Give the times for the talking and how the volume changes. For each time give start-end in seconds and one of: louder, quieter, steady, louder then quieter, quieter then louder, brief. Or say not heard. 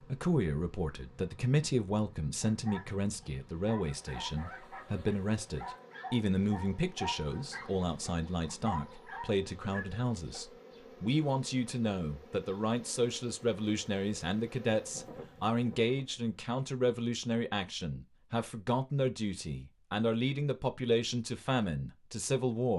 0.0-22.7 steady.